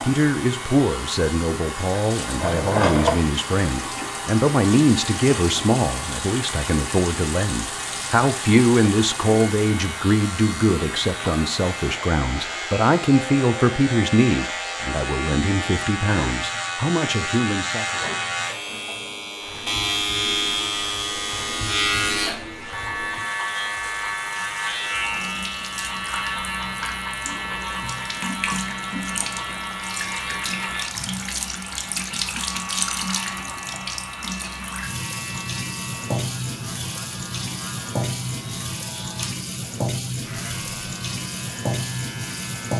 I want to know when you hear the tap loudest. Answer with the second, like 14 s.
3 s.